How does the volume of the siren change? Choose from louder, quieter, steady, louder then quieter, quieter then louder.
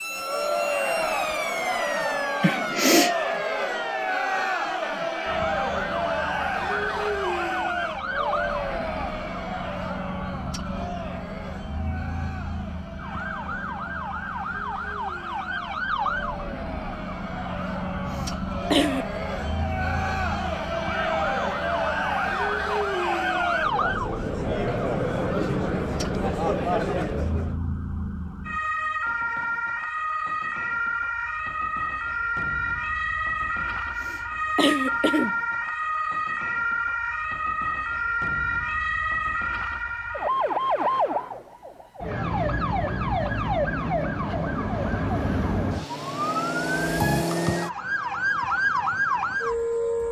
louder.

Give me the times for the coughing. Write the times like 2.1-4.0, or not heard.
2.4-3.1, 18.2-19.2, 33.6-35.4.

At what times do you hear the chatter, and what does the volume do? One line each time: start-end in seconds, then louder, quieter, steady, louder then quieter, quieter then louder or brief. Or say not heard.
0.1-27.6 quieter then louder.